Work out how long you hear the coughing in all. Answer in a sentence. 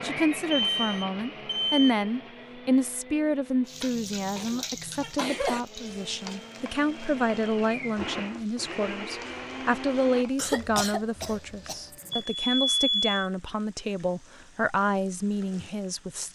You can hear the coughing for 3 seconds altogether.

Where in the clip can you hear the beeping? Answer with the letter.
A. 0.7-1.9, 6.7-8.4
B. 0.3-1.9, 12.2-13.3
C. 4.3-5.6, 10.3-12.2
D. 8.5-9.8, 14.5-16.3
B.